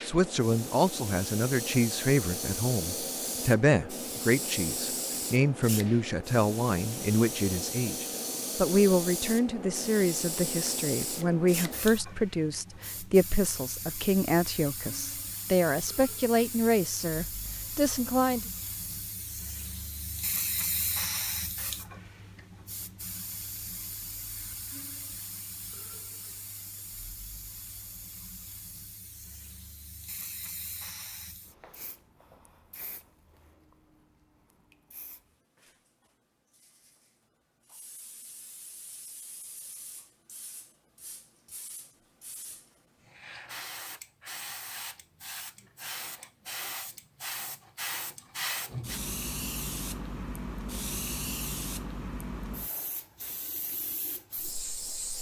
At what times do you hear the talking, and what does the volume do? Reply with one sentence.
The talking can be heard from 0.0 to 18.4 s, at a steady volume.